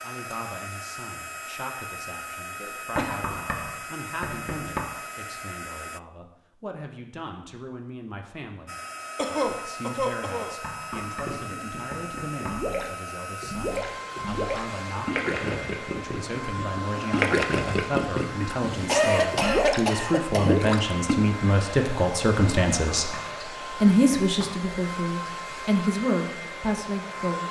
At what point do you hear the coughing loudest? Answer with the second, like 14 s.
19 s.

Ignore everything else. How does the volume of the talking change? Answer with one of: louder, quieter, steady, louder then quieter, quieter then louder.
louder.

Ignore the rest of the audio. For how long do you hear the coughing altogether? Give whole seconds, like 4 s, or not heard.
4 s.